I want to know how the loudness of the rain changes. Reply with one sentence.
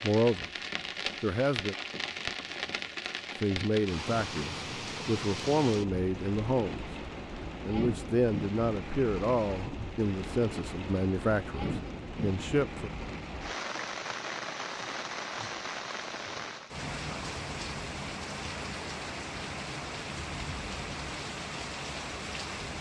The volume of the rain stays about the same.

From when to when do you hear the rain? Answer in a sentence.
The rain can be heard from 0.0 to 22.7 s.